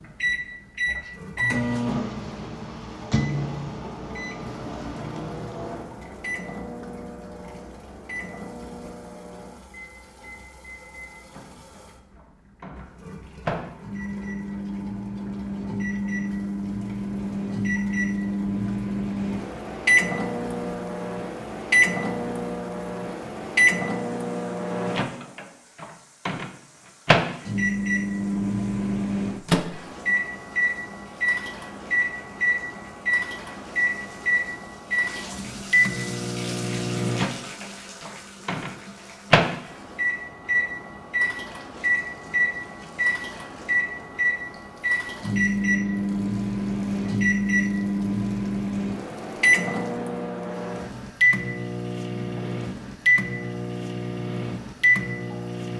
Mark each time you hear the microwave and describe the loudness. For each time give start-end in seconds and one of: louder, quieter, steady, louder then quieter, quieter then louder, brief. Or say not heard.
0.2-55.7 louder.